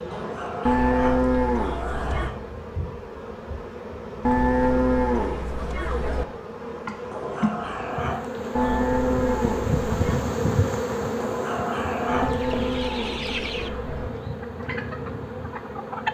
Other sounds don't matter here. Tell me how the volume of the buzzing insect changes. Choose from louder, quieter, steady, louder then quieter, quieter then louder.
louder then quieter.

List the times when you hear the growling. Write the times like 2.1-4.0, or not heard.
0.1-2.4, 7.1-8.8, 11.2-12.4.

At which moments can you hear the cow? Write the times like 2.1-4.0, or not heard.
0.7-2.4, 4.2-6.2, 8.6-10.2, 12.1-14.1.